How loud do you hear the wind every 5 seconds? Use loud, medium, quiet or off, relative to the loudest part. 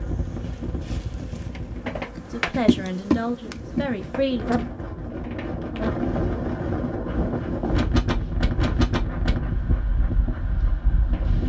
medium, loud, medium.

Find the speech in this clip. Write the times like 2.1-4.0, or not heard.
2.2-4.5.